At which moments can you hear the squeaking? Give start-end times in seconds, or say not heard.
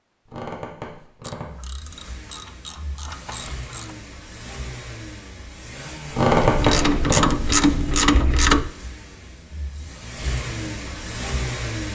0.2-1.6, 6.1-7.3.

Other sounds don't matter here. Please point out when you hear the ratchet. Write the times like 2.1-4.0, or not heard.
1.2-3.9, 6.3-8.7.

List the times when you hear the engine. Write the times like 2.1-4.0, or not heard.
1.4-11.8.